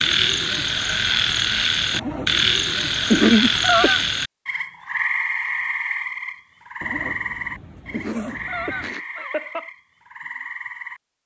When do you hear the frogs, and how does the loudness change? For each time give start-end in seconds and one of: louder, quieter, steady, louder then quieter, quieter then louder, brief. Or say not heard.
0.0-11.0 quieter.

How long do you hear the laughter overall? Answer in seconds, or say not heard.
3 s.